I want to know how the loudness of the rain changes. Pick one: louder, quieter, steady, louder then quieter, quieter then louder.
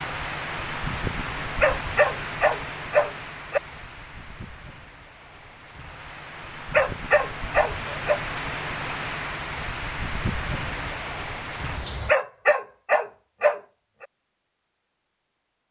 quieter then louder.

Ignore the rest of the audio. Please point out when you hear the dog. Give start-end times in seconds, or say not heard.
1.6-3.6, 6.7-8.2, 12.1-14.1.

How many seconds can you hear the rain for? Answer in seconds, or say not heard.
12 s.